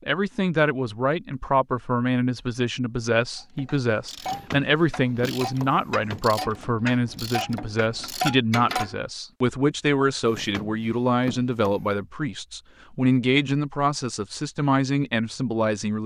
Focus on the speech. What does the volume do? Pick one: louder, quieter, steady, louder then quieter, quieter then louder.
steady.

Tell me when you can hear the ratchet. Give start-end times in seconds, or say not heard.
3.4-8.9.